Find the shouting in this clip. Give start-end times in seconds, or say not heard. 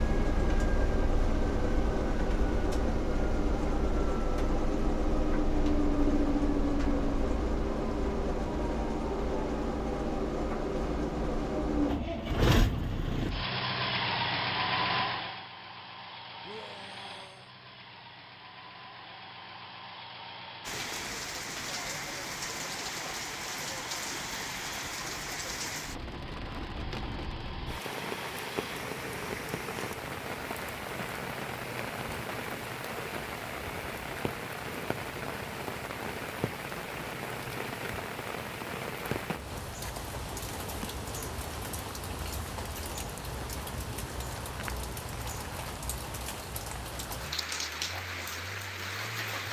16.4-17.5.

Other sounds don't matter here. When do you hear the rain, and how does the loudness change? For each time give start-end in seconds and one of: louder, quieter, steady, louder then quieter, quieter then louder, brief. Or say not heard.
20.6-49.4 steady.